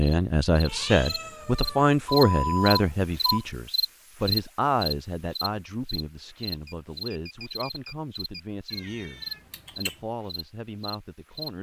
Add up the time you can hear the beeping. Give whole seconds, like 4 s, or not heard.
3 s.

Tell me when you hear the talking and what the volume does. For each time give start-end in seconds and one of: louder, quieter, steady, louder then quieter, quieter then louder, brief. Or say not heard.
0.0-11.5 quieter.